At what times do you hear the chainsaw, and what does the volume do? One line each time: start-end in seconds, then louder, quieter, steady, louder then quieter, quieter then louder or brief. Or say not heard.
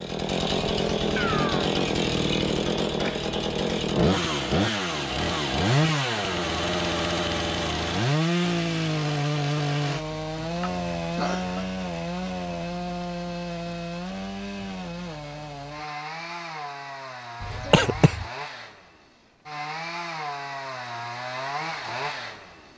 0.0-22.7 quieter.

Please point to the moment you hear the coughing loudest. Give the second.
18 s.